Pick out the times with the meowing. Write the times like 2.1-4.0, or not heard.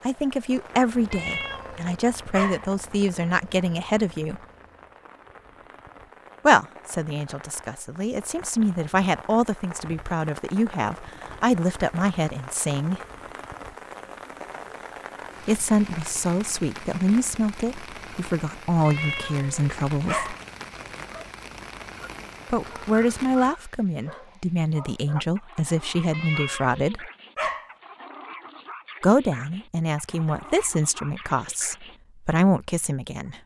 1.1-2.6, 18.9-20.4, 26.1-27.7.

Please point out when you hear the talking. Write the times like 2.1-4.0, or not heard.
0.1-4.4, 6.5-13.0, 15.4-20.4, 22.5-27.1, 29.0-33.4.